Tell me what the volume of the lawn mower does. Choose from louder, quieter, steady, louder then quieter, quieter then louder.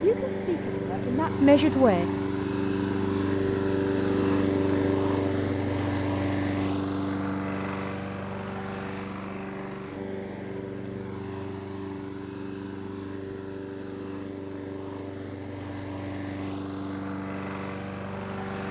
quieter.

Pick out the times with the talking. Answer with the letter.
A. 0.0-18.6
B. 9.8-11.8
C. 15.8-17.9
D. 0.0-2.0
D.